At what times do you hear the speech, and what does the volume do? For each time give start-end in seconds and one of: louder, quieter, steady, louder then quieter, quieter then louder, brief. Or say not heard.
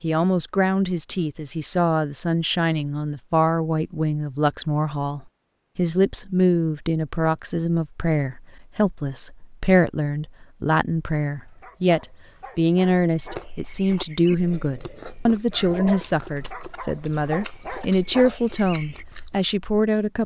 0.0-20.2 steady.